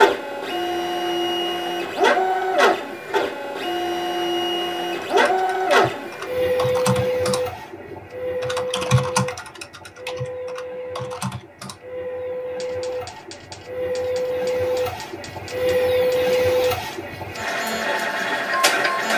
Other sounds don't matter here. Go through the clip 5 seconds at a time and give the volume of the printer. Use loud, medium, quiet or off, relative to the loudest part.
loud, loud, medium, loud.